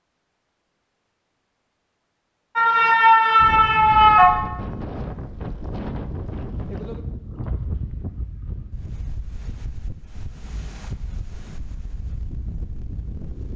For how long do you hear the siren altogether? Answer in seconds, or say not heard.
2 s.